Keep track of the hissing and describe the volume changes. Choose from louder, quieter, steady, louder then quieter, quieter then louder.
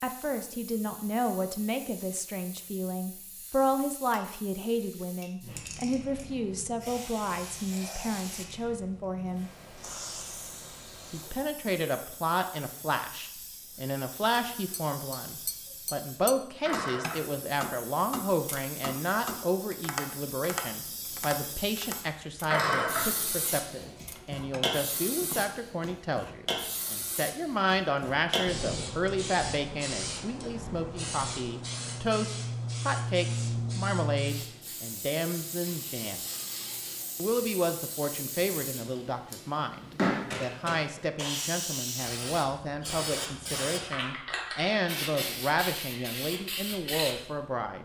louder.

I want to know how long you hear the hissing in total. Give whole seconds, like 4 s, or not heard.
48 s.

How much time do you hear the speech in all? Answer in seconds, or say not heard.
45 s.